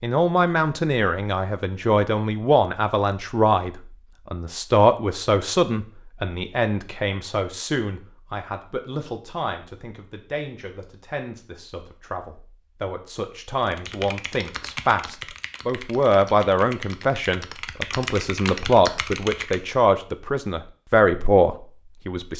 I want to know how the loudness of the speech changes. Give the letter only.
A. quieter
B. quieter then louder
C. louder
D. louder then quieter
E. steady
B.